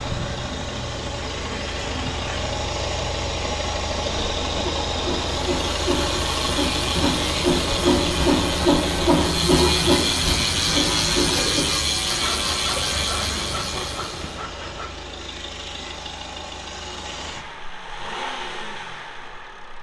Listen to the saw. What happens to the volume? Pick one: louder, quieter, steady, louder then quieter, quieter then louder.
louder then quieter.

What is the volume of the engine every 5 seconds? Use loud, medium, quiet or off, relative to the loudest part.
loud, loud, medium, medium.